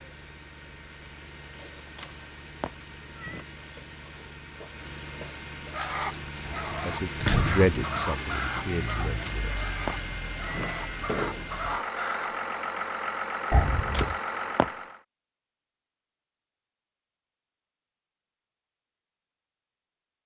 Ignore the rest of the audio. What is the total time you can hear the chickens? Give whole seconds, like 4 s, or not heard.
7 s.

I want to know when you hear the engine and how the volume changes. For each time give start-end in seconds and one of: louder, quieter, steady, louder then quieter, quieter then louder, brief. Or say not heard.
0.0-15.0 louder.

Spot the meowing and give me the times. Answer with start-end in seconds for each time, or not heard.
1.9-3.5, 9.2-10.9, 13.9-14.7.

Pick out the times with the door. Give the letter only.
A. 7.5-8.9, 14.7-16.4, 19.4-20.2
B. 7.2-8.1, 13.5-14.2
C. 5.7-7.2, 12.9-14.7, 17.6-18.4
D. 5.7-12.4
B.